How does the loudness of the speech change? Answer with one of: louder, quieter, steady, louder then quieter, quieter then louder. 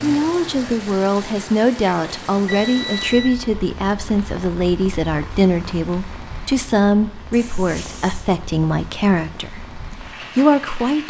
steady.